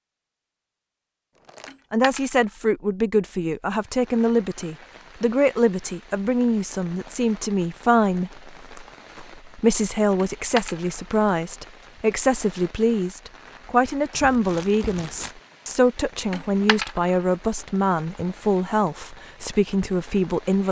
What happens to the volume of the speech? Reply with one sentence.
The volume of the speech stays about the same.